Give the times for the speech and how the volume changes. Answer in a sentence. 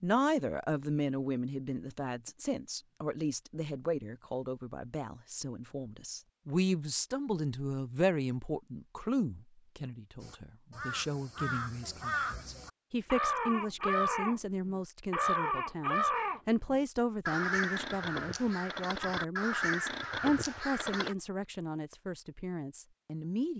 The speech can be heard from 0.0 to 23.5 s, at a steady volume.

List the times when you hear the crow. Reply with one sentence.
You can hear the crow from 10.2 to 21.1 s.